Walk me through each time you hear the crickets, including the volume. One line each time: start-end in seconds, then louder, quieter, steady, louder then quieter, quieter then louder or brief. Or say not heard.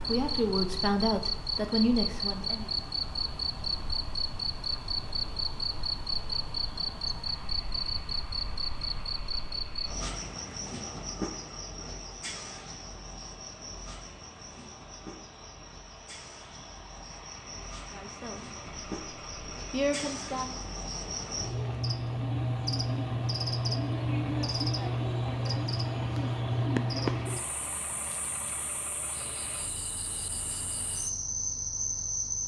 0.0-32.4 quieter then louder.